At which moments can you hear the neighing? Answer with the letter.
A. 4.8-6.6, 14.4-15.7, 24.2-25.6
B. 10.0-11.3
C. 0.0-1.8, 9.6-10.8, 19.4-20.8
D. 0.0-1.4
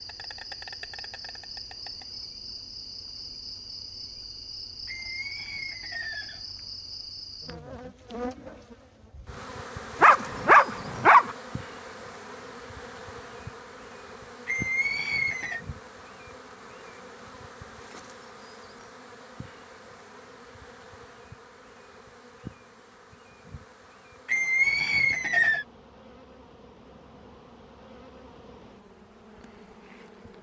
A.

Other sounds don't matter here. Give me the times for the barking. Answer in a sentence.
The barking can be heard from 10.0 to 11.3 s.